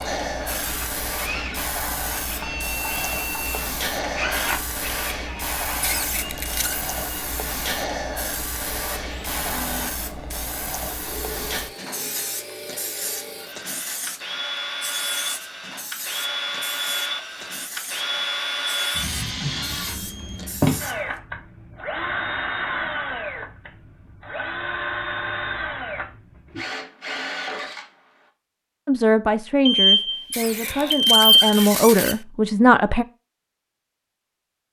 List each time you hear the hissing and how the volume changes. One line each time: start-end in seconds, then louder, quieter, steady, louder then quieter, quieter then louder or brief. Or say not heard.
0.0-21.2 quieter.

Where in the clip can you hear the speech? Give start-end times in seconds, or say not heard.
28.9-33.0.